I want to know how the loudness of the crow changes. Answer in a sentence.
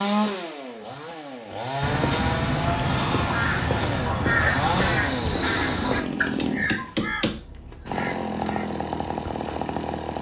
The loudness of the crow goes down.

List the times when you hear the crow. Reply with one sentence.
You can hear the crow from 1.8 to 9.6 s.